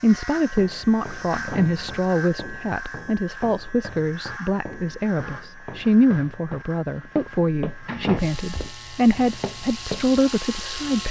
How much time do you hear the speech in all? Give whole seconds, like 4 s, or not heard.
11 s.